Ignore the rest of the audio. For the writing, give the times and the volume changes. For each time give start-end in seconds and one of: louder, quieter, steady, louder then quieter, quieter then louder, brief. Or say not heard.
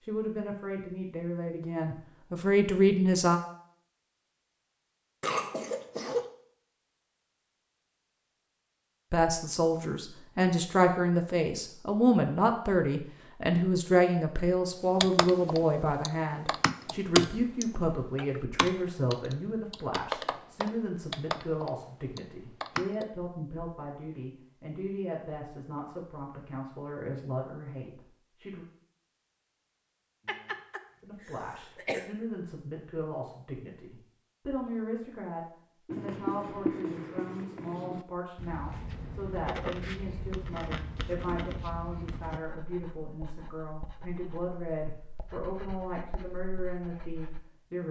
35.9-47.5 quieter.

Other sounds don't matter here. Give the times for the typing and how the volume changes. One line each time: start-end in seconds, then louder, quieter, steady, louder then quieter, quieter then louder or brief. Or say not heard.
15.0-23.1 louder then quieter.